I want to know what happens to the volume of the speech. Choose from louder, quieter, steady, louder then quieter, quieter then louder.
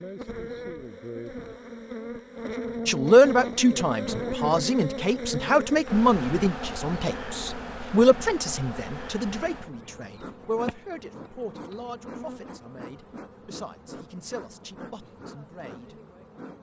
quieter.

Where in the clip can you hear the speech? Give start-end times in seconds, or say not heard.
2.9-15.9.